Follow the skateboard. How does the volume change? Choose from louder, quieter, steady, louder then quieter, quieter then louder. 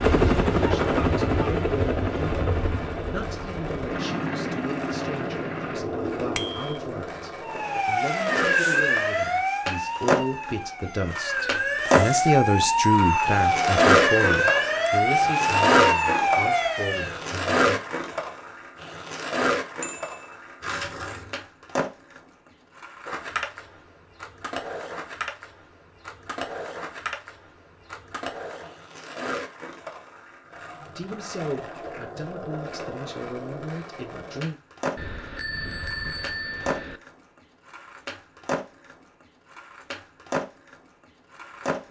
louder then quieter.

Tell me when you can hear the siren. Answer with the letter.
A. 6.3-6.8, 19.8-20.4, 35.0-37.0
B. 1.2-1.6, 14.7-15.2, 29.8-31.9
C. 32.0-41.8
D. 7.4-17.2
D.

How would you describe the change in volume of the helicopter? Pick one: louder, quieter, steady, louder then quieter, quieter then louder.
quieter.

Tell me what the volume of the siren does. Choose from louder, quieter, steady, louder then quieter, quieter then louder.
quieter then louder.